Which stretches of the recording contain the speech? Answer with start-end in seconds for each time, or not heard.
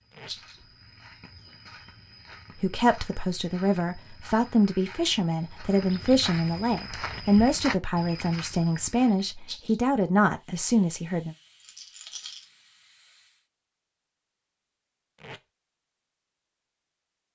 2.6-11.3.